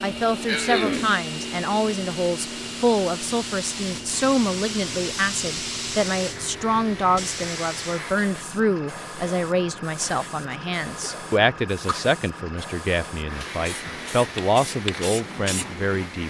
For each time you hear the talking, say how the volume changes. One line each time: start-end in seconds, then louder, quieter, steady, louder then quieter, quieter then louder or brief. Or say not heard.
0.0-16.2 steady.